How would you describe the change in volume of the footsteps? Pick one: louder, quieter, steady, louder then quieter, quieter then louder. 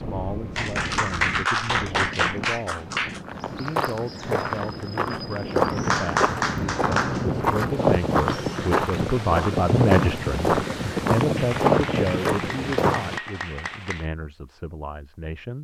steady.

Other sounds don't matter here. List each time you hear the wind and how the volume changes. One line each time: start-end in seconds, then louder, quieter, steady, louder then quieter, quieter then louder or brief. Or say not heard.
0.0-13.2 louder.